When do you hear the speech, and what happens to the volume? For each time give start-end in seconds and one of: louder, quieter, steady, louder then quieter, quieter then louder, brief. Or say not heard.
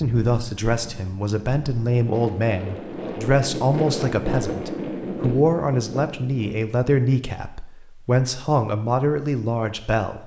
0.0-10.2 steady.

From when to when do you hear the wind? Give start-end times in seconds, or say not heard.
0.0-6.5.